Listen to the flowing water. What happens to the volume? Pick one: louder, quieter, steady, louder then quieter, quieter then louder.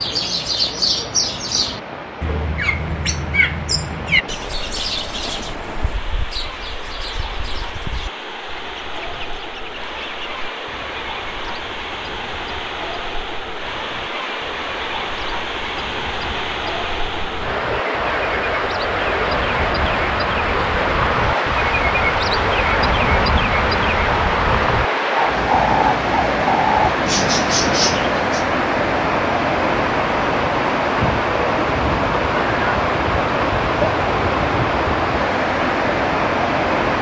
louder.